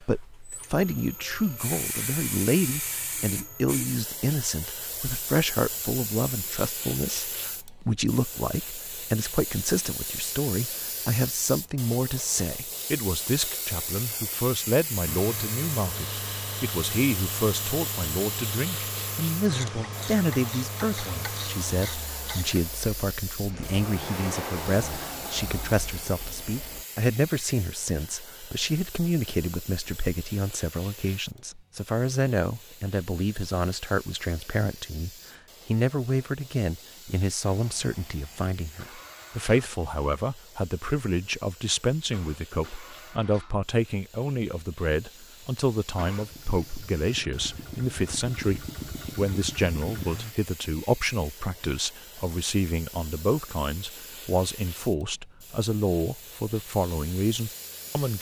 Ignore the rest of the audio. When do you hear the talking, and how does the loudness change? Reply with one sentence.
You can hear the talking from 0.0 to 58.1 s, at a steady volume.